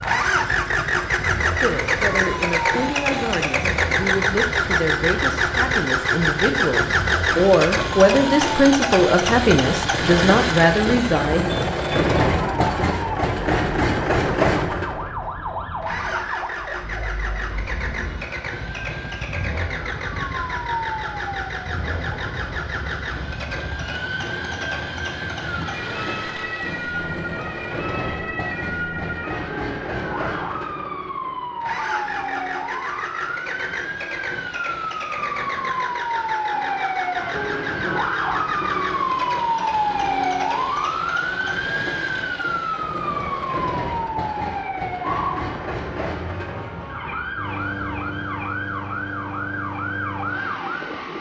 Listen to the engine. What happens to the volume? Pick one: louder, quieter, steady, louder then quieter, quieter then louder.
quieter.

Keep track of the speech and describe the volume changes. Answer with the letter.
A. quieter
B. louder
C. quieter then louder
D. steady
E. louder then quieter
B.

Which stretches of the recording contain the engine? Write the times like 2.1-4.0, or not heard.
0.0-51.1.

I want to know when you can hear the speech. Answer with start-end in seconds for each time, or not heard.
1.6-11.5.